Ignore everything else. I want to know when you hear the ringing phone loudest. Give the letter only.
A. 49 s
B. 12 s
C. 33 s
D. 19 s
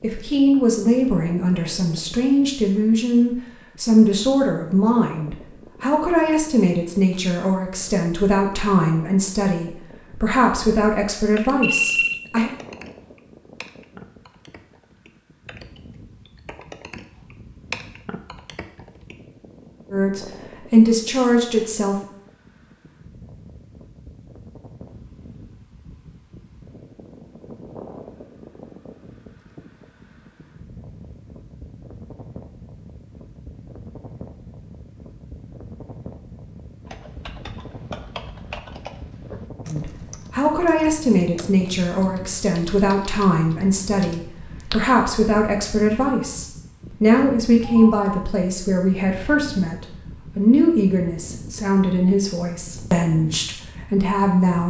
B.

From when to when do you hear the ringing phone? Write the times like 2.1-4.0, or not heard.
11.6-12.2, 47.6-48.2.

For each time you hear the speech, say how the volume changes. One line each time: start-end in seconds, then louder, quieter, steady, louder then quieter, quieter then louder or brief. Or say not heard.
0.0-12.5 steady
19.9-22.0 brief
39.6-54.6 steady.